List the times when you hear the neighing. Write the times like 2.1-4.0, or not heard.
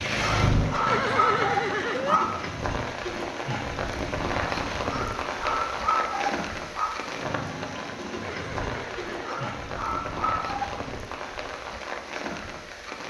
0.8-2.2, 8.2-9.6.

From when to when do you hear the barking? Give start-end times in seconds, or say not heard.
0.2-2.5, 4.8-7.0, 9.2-10.8.